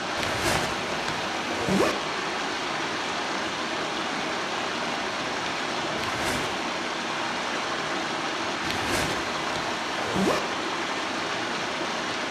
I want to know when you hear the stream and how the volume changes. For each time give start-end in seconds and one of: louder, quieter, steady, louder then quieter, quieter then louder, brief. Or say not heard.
0.0-12.2 steady.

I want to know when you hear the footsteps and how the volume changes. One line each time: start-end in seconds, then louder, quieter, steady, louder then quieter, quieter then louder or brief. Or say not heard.
not heard.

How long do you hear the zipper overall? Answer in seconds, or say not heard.
4 s.